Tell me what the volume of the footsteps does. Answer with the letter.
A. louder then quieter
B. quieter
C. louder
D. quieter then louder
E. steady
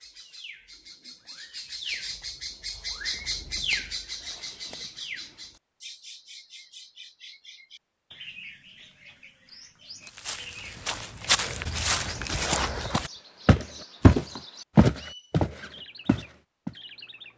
A.